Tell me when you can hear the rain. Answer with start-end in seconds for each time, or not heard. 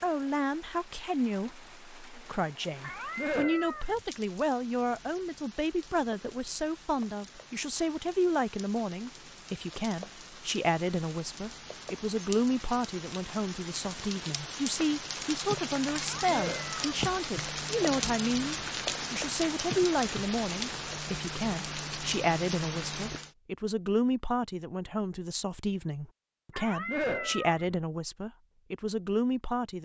0.0-23.3.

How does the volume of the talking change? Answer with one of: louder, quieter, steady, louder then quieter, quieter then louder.
steady.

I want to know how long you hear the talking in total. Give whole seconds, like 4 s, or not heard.
30 s.